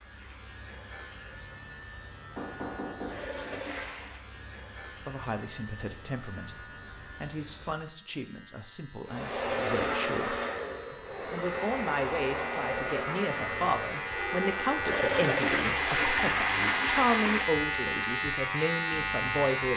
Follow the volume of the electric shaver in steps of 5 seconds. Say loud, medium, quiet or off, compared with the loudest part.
quiet, quiet, medium, loud.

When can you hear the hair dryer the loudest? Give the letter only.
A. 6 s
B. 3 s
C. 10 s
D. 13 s
C.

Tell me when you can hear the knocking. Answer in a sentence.
You can hear the knocking from 2.4 to 3.3 s.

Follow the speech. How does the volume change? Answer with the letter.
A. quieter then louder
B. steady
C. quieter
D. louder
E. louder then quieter
D.